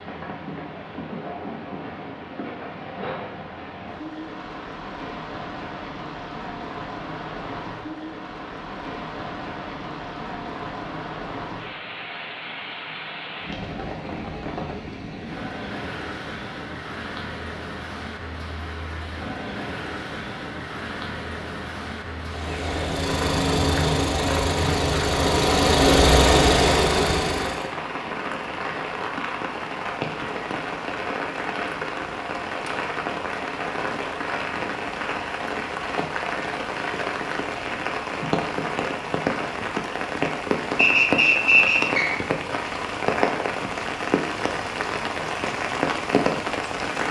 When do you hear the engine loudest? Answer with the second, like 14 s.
26 s.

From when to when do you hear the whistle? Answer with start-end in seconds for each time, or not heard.
40.8-42.1.